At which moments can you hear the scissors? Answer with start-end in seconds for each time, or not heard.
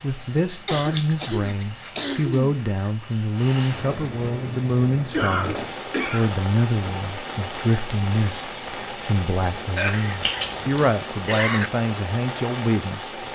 0.1-2.9, 10.2-10.8.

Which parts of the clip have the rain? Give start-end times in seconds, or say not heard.
0.0-13.3.